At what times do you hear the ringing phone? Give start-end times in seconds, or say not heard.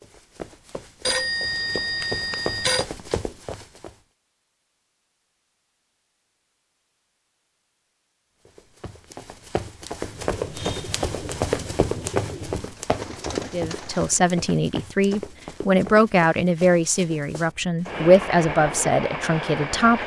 1.1-2.9.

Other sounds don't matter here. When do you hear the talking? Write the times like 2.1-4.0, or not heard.
13.5-20.0.